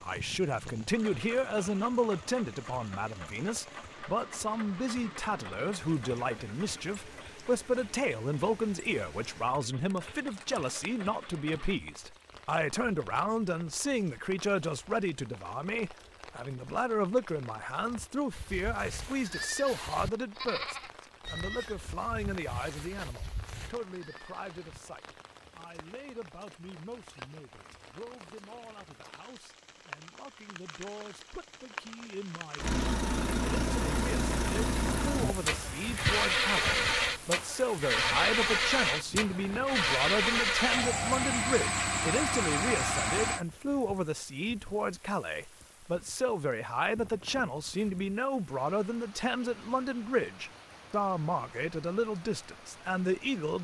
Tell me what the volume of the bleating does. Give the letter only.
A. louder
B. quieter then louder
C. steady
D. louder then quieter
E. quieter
E.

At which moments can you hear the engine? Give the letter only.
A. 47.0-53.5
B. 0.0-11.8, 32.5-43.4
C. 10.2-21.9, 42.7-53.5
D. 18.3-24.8
B.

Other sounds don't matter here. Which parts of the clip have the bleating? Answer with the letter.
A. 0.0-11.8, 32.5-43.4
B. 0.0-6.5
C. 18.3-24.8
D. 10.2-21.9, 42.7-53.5
C.